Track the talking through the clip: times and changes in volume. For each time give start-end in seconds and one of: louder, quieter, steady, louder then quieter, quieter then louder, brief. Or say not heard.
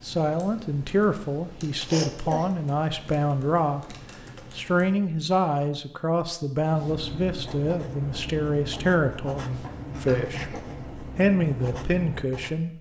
0.0-12.7 steady.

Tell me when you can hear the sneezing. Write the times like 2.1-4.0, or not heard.
1.9-2.5, 9.6-10.8.